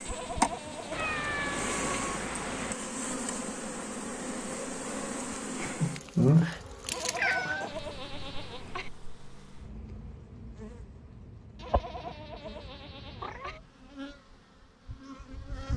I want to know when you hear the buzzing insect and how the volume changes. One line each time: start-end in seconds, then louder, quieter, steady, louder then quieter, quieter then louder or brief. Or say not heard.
0.0-15.7 quieter.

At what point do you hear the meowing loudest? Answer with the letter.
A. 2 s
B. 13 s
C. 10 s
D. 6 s
D.